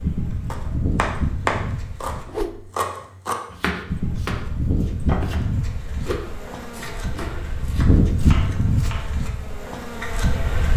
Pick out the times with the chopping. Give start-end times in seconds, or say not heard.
0.5-9.2.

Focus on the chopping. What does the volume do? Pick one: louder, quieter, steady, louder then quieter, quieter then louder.
quieter.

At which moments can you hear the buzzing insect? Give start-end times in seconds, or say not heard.
0.0-2.2, 3.9-10.7.